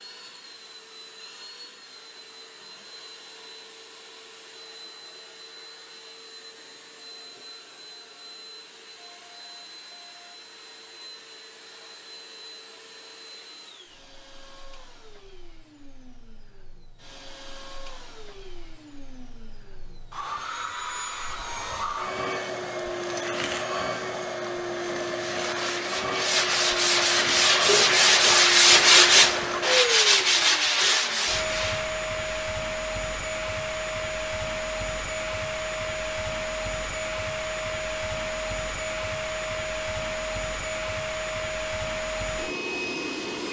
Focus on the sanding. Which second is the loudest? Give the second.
29 s.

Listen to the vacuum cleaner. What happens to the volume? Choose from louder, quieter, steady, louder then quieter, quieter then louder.
louder.